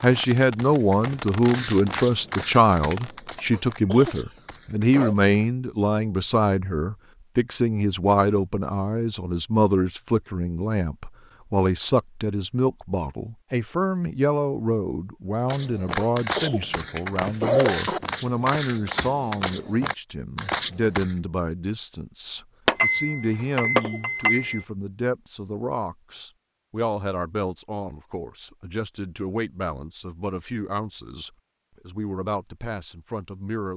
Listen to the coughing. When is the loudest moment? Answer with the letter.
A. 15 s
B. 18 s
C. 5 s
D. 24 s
B.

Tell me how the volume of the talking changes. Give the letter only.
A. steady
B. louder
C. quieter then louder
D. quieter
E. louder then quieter
D.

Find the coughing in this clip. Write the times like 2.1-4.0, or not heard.
3.5-5.2, 15.9-18.0, 23.4-24.2.